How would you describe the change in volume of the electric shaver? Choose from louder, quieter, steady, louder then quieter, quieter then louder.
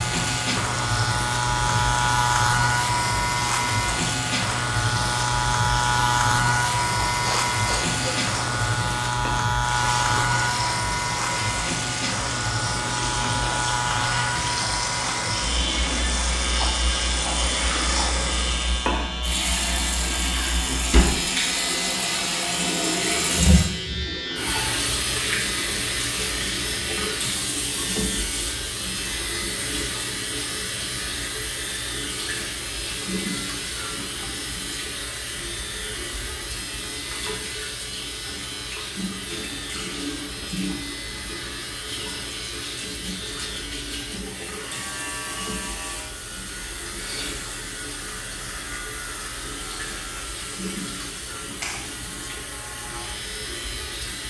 quieter.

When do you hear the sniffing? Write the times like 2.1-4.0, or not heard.
7.2-8.2, 47.0-47.4.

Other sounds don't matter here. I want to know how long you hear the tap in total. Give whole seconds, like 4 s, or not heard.
54 s.